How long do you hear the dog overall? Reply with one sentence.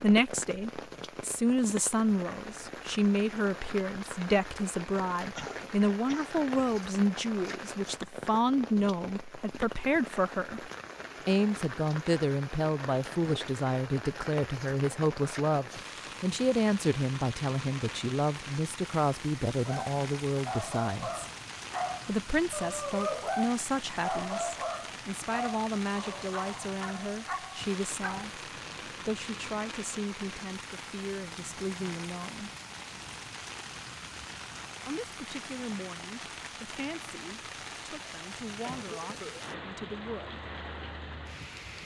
The dog can be heard for 9 seconds in total.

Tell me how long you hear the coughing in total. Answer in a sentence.
You can hear the coughing for 2 seconds altogether.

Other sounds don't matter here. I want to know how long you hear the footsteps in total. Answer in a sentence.
You can't hear the footsteps here.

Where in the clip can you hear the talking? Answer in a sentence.
You can hear the talking from 0.0 to 21.2 s, from 22.1 to 32.5 s and from 34.9 to 40.4 s.